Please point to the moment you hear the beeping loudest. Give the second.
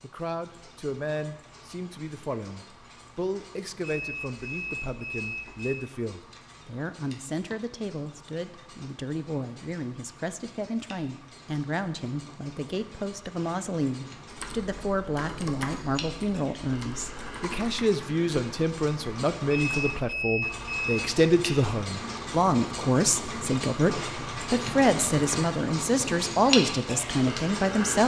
20 s.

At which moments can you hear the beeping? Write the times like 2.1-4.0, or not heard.
4.0-5.8, 19.5-21.1.